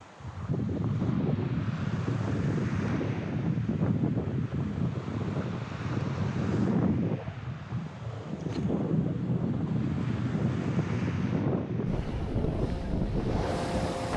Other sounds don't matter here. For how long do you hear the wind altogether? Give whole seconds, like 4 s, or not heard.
14 s.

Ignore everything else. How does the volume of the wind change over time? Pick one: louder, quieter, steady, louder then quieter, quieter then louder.
steady.